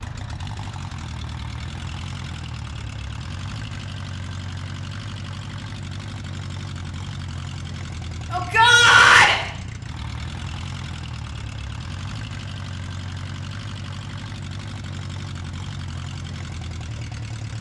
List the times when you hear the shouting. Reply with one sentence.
You can hear the shouting from 8.3 to 9.3 s.